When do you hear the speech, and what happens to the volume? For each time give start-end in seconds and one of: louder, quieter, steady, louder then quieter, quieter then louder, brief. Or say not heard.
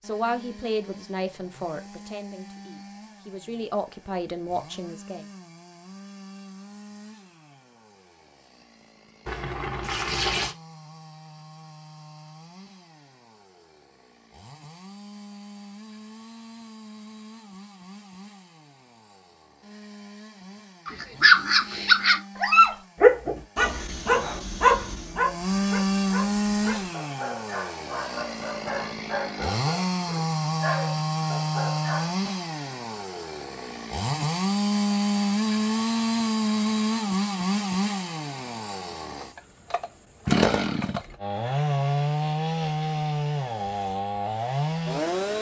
0.0-5.2 quieter then louder.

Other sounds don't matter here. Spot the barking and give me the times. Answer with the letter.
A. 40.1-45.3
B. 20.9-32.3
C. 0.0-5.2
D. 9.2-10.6
B.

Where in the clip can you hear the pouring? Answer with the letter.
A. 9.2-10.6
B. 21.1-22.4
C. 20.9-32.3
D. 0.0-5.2
A.